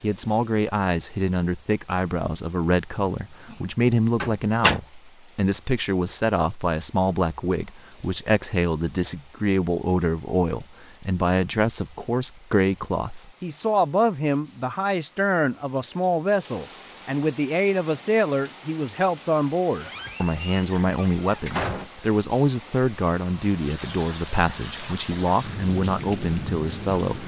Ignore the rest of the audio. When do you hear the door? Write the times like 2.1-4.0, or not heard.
4.2-4.8, 19.8-21.9.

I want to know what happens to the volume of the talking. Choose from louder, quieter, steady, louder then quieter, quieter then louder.
steady.